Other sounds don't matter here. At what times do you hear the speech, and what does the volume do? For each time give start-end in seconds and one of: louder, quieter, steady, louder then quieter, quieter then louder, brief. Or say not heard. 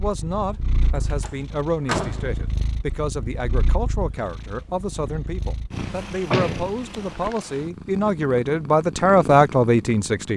0.0-10.3 louder.